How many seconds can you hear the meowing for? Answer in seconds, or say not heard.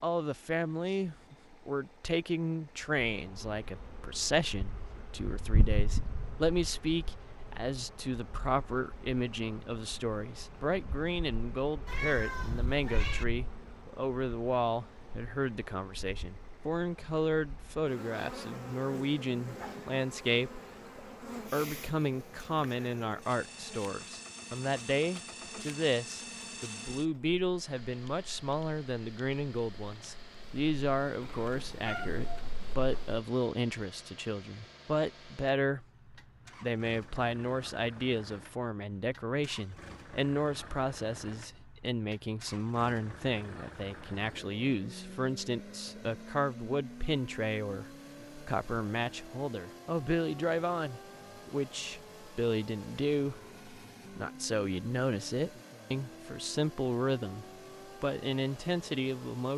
3 s.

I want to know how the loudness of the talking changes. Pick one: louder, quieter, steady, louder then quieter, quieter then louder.
steady.